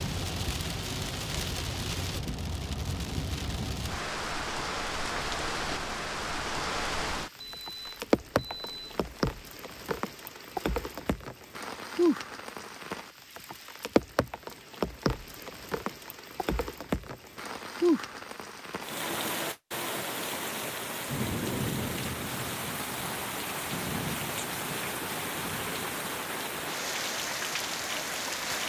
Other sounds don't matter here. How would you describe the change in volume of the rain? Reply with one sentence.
The volume of the rain stays about the same.